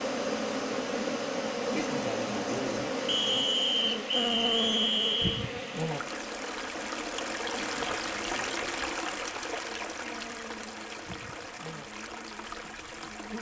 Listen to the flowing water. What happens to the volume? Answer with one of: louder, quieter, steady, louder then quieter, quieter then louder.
louder then quieter.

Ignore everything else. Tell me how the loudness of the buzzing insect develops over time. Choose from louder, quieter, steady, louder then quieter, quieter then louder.
quieter.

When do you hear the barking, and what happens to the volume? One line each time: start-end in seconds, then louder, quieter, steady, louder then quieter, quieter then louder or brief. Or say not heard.
not heard.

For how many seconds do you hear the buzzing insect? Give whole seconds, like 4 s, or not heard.
13 s.